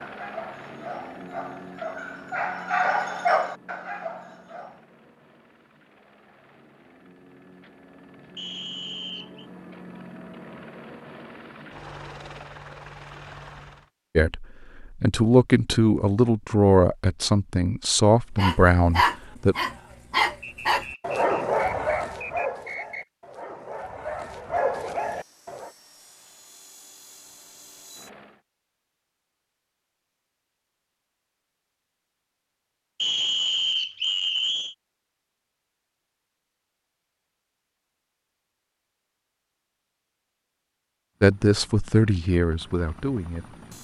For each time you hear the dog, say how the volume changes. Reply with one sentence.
The dog can be heard from 0.0 to 4.8 s, getting louder then quieter; and from 18.4 to 25.7 s, getting quieter then louder.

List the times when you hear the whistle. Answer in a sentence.
The whistle can be heard from 8.3 to 9.4 s, from 20.4 to 23.1 s and from 33.0 to 34.8 s.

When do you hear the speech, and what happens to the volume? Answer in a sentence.
The speech can be heard from 14.2 to 19.6 s, at a steady volume; and briefly from 41.2 to 43.5 s.